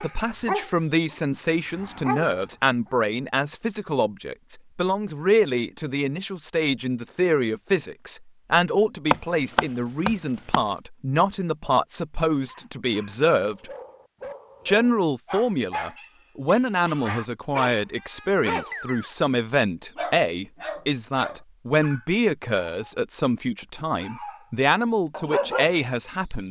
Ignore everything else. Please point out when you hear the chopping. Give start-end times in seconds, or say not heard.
9.1-10.6.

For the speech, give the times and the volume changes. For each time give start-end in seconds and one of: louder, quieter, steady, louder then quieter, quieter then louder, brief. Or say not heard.
0.0-13.7 steady
14.7-26.4 steady.